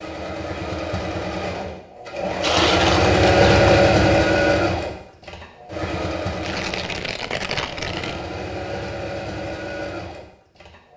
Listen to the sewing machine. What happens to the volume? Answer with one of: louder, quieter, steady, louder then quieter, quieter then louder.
louder then quieter.